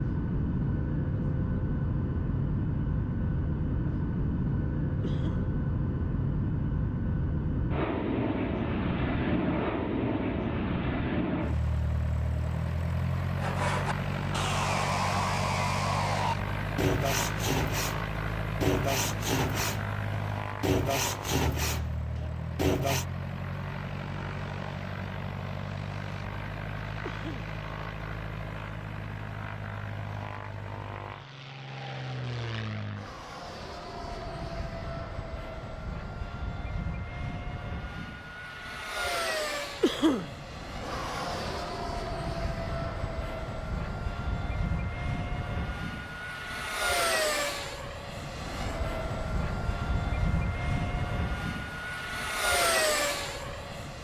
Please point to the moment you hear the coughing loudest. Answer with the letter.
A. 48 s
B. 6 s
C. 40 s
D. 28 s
C.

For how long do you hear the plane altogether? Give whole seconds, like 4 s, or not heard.
54 s.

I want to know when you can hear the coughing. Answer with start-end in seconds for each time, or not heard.
5.0-5.5, 27.0-27.6, 39.8-40.3.